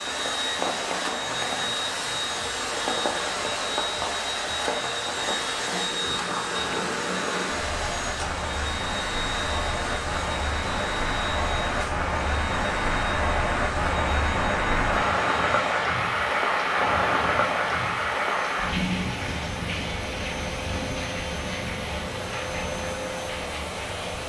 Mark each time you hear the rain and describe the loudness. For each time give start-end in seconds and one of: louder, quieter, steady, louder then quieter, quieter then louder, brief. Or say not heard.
0.0-24.2 louder then quieter.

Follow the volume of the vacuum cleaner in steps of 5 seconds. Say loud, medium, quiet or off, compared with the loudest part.
loud, loud, medium, medium, medium.